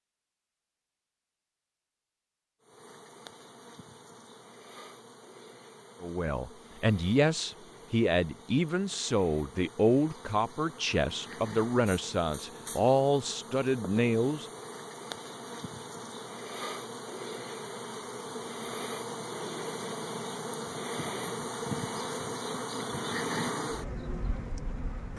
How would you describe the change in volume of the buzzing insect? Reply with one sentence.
The volume of the buzzing insect goes up.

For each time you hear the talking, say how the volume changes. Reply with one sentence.
The talking can be heard from 6.0 to 14.4 s, at a steady volume.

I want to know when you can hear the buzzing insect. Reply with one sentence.
The buzzing insect can be heard from 2.6 to 25.1 s.